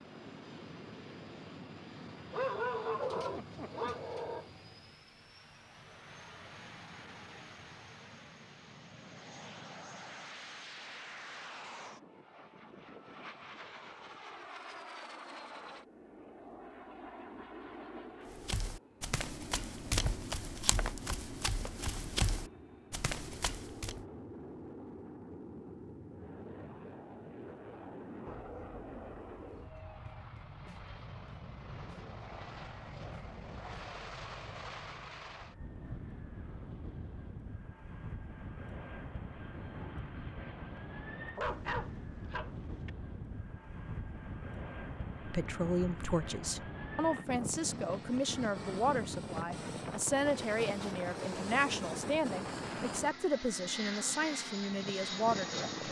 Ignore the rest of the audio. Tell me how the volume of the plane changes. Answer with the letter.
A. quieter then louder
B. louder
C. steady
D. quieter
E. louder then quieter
B.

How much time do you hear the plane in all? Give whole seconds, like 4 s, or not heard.
56 s.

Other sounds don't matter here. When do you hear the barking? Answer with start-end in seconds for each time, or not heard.
2.3-4.5, 28.2-30.1, 41.4-42.9.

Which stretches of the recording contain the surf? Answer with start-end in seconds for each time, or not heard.
not heard.